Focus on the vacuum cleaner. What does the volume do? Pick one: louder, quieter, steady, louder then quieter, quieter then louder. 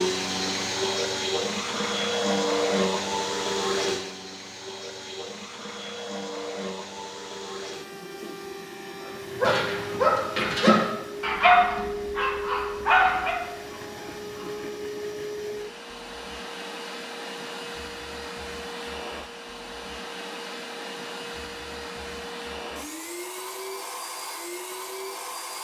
quieter.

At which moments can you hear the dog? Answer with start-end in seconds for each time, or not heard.
9.3-14.7.